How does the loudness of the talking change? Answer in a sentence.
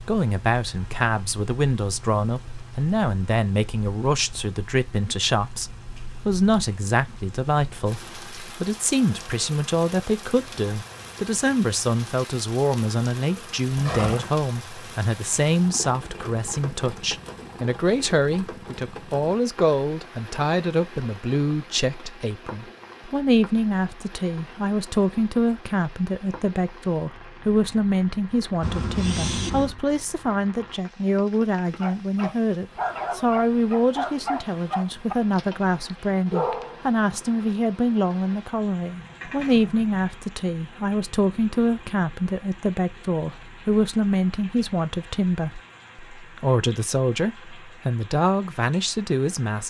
The volume of the talking stays about the same.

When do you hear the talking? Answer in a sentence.
The talking can be heard from 0.1 to 49.6 s.